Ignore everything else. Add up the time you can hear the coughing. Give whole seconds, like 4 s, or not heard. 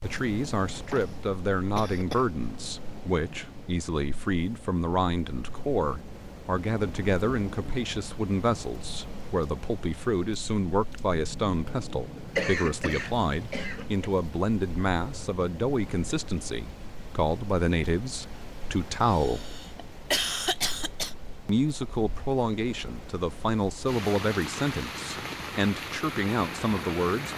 6 s.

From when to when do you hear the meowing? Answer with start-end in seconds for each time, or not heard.
not heard.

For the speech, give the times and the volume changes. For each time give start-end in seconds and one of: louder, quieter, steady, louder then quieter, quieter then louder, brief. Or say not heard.
0.0-19.5 steady
21.4-27.3 steady.